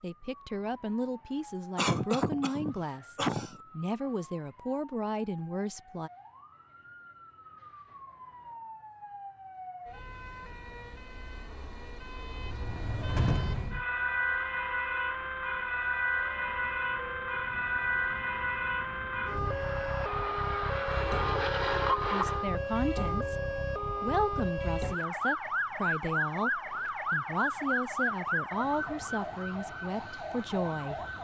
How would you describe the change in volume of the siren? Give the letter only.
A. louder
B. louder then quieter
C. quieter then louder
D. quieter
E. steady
A.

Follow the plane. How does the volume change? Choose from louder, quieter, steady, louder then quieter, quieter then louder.
louder.